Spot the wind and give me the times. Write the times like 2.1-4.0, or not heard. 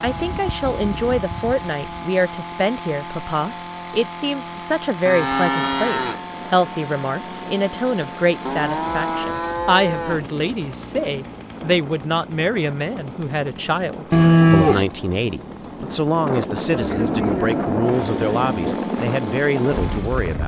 6.0-20.4.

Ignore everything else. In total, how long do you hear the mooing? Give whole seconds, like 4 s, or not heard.
8 s.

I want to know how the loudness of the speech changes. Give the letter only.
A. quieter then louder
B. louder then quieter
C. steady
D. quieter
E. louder
C.